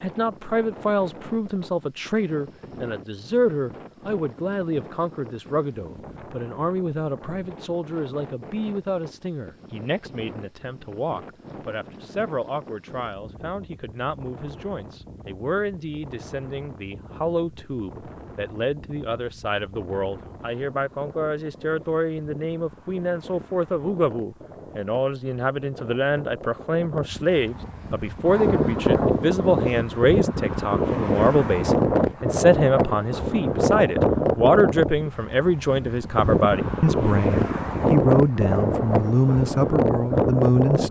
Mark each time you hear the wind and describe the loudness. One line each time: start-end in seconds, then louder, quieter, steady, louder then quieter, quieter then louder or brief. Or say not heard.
0.0-40.8 louder.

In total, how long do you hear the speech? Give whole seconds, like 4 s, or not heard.
41 s.